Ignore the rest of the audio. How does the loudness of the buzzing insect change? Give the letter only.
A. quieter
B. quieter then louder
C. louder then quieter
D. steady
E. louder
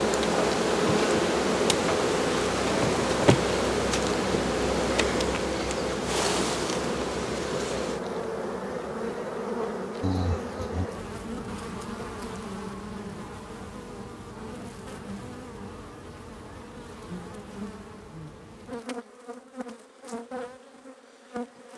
A.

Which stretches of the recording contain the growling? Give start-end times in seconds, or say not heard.
10.0-10.9.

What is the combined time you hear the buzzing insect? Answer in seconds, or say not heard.
22 s.